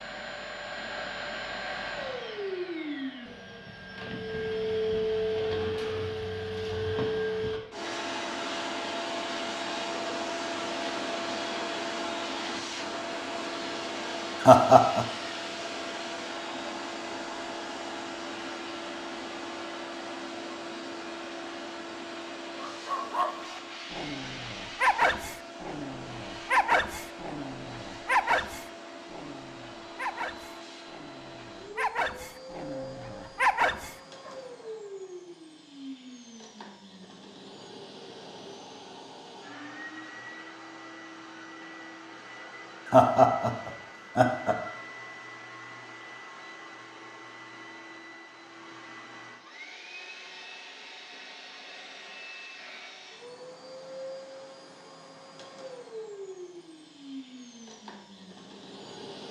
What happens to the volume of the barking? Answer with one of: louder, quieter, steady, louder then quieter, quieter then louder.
quieter then louder.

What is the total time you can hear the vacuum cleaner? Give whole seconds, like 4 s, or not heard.
59 s.